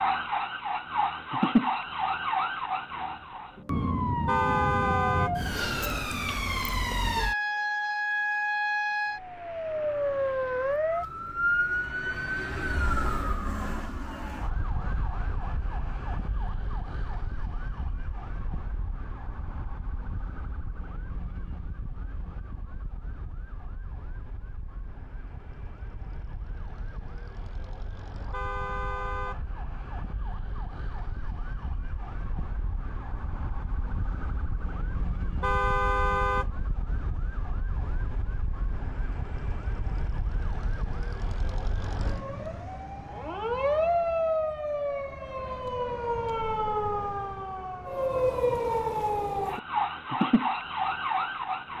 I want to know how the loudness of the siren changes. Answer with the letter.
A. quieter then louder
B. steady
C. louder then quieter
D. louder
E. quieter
A.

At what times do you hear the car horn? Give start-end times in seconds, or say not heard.
4.2-5.3, 28.3-29.4, 35.4-36.5.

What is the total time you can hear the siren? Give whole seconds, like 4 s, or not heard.
52 s.